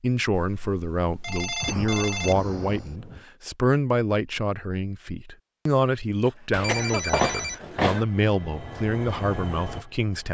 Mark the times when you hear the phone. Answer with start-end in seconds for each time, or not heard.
0.3-2.4, 6.5-8.1.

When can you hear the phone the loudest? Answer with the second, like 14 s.
7 s.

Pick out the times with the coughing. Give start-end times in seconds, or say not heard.
1.6-3.2, 6.2-7.0.